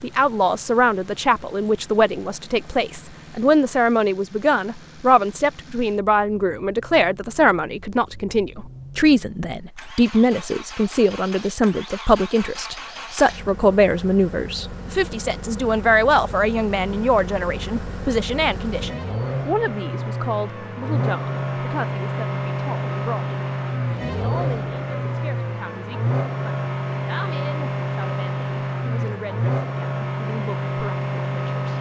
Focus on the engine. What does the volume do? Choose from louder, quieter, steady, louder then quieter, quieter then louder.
louder.